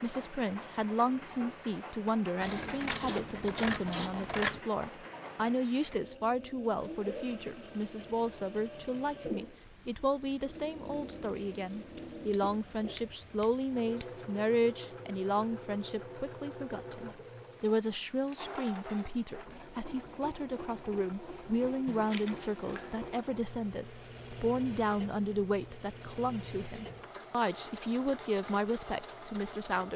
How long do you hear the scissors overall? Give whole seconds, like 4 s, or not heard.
6 s.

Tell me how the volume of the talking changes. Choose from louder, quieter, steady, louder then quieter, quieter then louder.
steady.